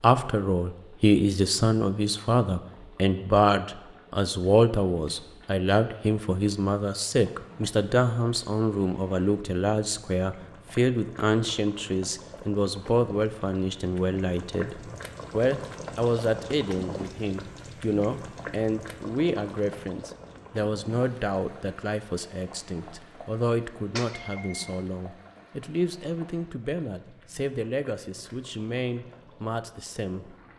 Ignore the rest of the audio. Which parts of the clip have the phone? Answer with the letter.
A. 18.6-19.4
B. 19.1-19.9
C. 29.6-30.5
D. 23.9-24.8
D.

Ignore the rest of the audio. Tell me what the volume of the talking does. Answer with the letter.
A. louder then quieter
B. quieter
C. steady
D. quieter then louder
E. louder
B.